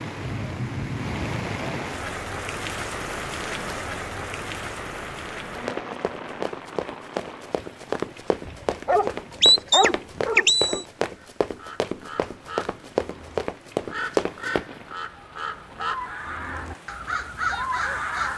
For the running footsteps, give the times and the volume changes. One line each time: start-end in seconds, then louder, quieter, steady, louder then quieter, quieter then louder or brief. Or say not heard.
5.7-14.7 louder.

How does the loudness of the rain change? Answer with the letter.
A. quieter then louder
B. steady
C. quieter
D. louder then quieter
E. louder
A.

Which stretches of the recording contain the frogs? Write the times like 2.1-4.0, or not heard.
not heard.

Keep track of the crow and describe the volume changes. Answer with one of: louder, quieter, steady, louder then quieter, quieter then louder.
louder.